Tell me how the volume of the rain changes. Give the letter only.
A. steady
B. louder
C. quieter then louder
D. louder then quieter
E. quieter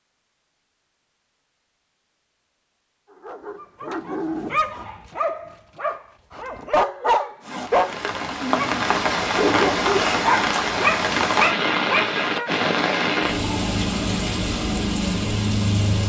A.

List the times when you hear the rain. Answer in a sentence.
The rain can be heard from 7.5 to 16.0 s.